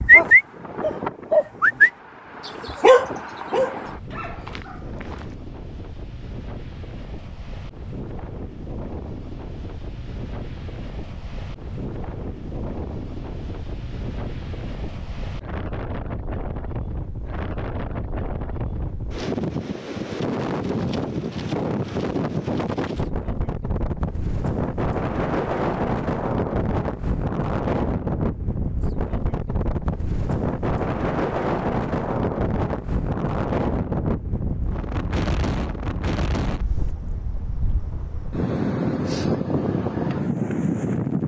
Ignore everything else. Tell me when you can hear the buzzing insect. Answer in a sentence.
The buzzing insect can't be heard in this clip.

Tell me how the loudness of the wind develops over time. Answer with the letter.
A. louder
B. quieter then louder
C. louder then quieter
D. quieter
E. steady
A.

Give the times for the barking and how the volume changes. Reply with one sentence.
The barking can be heard from 0.0 to 5.2 s, getting louder then quieter.